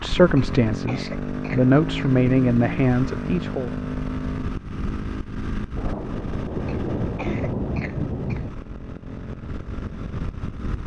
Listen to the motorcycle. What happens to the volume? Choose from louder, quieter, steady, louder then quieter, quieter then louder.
quieter.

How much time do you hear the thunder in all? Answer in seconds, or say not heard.
3 s.